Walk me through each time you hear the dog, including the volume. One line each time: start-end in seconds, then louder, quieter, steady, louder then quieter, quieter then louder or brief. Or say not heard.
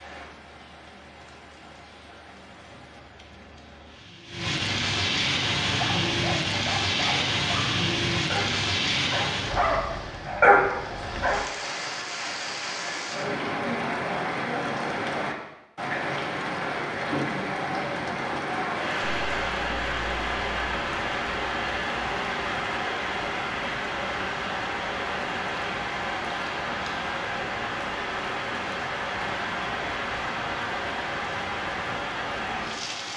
5.7-11.4 louder.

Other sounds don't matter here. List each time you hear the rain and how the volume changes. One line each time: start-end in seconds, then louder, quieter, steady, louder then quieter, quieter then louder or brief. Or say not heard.
0.0-33.1 steady.